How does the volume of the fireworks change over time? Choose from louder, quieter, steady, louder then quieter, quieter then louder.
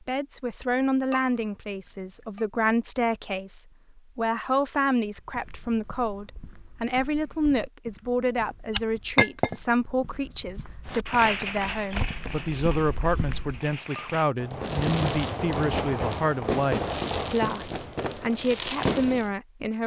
quieter then louder.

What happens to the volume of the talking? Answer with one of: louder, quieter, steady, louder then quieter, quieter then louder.
steady.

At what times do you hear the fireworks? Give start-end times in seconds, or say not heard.
10.8-19.4.